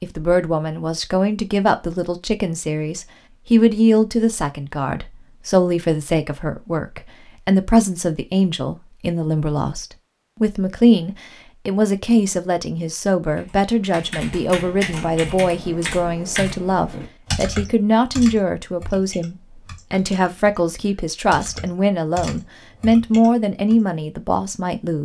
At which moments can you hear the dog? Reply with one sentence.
You can't hear the dog here.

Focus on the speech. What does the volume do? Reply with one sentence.
The loudness of the speech stays about the same.